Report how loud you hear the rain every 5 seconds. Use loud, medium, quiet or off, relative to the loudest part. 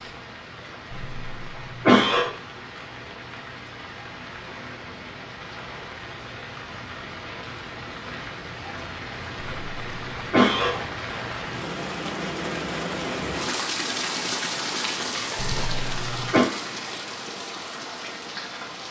medium, medium, loud, loud.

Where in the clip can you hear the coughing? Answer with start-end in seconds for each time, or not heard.
0.9-2.3, 9.4-10.8, 15.3-16.4.